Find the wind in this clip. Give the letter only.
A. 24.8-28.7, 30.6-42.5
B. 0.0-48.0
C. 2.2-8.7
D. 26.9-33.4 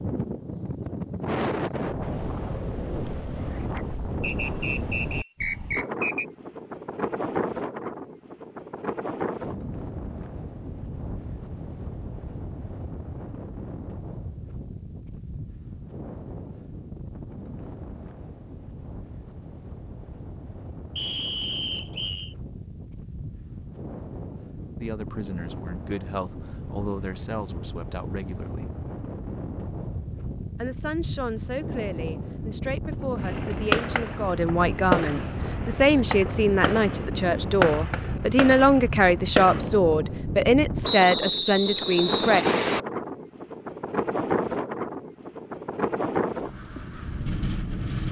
B.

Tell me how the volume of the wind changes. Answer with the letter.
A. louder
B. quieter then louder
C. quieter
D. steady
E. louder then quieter
B.